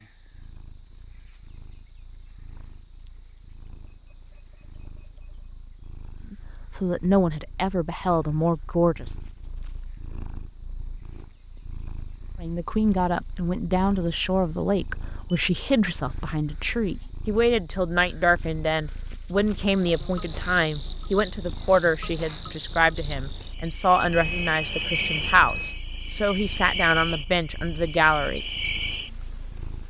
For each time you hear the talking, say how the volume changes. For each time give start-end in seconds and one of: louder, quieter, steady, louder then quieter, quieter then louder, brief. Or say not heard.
6.3-9.2 brief
12.4-28.4 steady.